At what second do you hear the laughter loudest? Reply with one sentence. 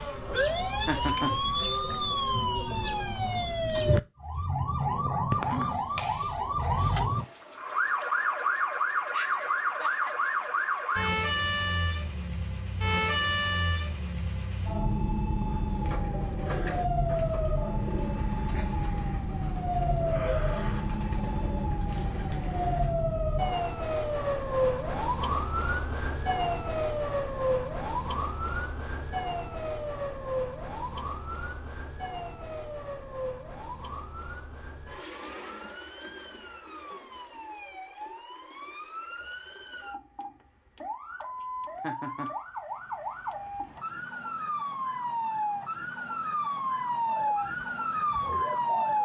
The loudest moment of the laughter is at 1 second.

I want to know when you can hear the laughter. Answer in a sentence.
You can hear the laughter from 0.8 to 1.4 s and from 41.8 to 42.3 s.